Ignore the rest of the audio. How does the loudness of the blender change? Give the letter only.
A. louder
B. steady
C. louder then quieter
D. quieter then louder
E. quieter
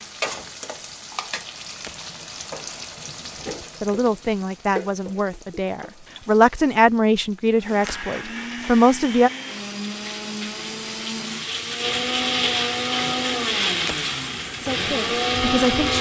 A.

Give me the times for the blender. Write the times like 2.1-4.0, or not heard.
7.5-15.9.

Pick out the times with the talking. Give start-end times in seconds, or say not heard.
3.8-9.3, 14.6-15.9.